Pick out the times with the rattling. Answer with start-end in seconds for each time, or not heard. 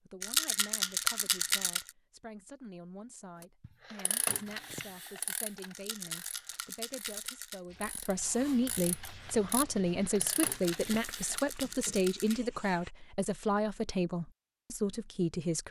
0.2-1.9, 5.7-7.6, 10.5-12.4.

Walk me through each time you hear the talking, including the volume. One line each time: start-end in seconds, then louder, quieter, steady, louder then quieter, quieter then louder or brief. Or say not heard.
0.0-15.6 louder.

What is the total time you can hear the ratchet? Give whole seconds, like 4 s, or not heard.
8 s.